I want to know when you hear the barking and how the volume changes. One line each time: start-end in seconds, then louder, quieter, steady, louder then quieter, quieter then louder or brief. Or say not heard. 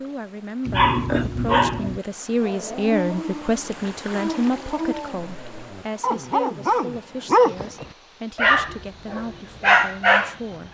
0.7-10.3 quieter then louder.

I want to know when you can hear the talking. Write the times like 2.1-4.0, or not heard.
0.0-10.6.